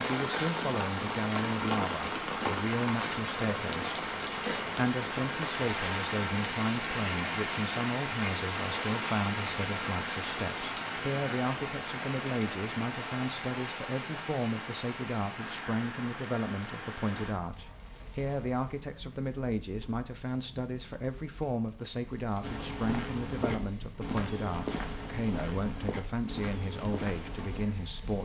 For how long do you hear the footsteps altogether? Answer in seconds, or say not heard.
5 s.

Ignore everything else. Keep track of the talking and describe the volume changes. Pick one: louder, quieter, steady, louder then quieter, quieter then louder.
steady.